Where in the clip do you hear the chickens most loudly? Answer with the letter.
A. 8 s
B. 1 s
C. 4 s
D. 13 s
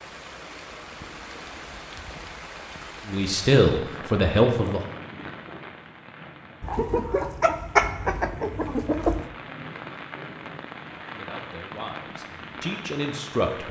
A.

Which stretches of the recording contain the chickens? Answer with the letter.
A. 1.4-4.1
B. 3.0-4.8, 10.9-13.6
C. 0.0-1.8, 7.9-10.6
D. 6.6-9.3
D.